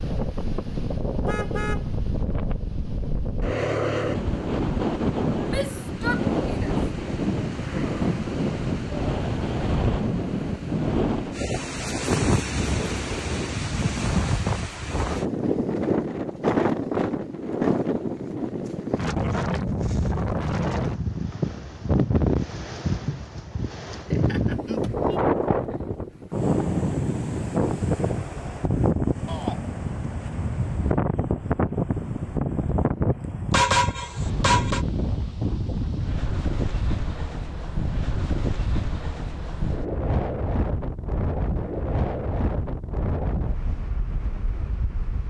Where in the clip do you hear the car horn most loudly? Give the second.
34 s.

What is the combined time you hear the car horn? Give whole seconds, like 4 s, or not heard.
3 s.